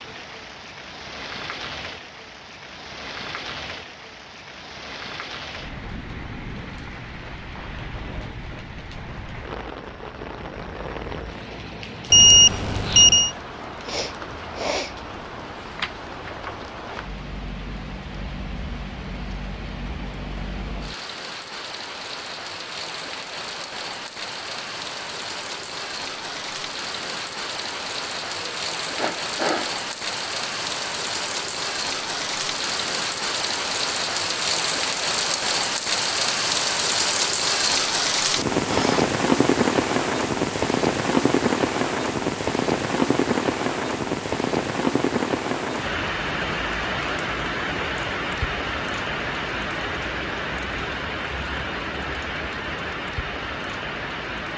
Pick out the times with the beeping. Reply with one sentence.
The beeping can be heard from 12.1 to 13.3 s.